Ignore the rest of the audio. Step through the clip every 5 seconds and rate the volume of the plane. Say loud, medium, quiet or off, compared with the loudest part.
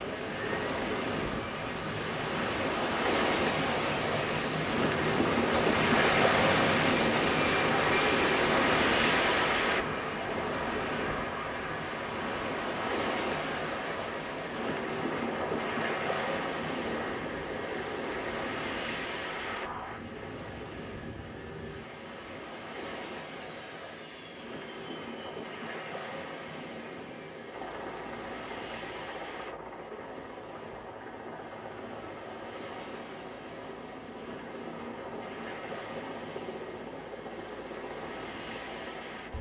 medium, loud, medium, medium, quiet, quiet, quiet, quiet.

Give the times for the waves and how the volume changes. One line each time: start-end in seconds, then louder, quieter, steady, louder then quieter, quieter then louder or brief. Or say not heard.
0.0-39.3 quieter.